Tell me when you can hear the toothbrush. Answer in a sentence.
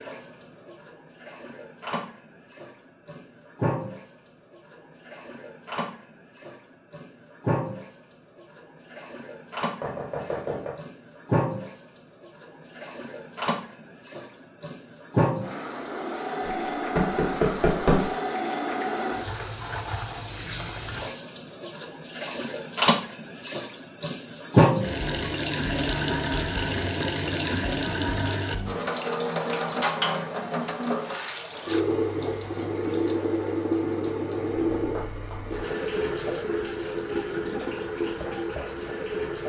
The toothbrush can't be heard in this clip.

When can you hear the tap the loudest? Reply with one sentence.
The volume of the tap peaks at 25 seconds.